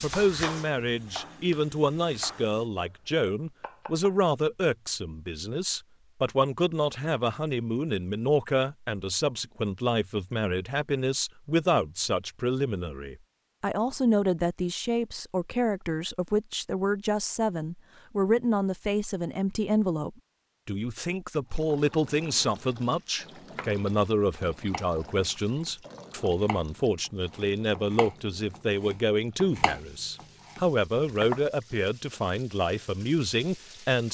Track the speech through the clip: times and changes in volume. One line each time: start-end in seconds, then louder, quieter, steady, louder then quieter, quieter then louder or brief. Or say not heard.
0.0-34.0 steady.